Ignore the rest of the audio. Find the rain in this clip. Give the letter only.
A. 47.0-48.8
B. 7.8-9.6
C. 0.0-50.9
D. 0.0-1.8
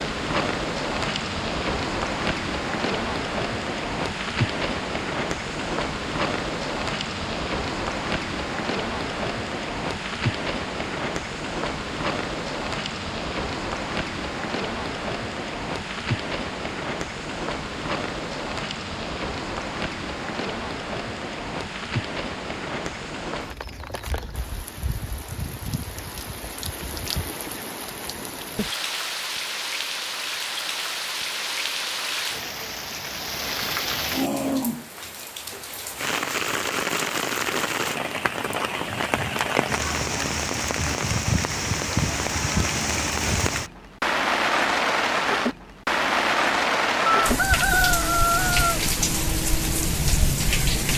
C.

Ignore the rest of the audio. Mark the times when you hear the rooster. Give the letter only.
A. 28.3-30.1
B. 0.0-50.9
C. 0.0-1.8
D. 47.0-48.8
D.